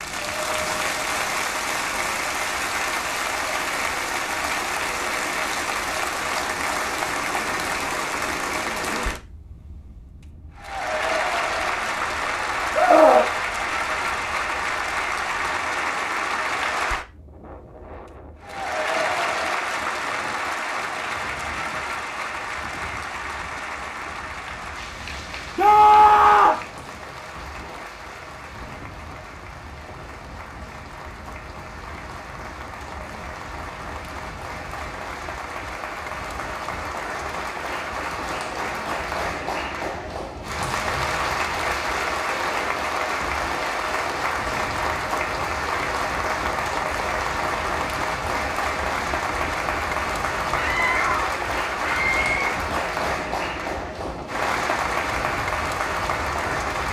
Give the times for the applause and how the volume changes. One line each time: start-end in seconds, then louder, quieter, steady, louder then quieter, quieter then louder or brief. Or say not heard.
0.0-56.8 quieter then louder.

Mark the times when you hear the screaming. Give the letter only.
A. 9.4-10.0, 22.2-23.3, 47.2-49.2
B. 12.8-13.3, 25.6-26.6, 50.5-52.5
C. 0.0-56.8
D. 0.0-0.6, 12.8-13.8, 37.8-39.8
B.